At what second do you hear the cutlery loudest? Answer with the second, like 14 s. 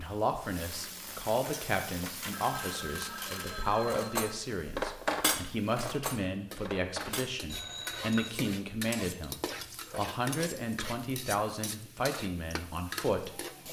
5 s.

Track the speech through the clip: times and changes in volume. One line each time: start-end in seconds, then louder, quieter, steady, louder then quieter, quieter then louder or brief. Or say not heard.
0.0-13.4 steady.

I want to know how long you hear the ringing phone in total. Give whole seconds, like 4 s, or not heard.
3 s.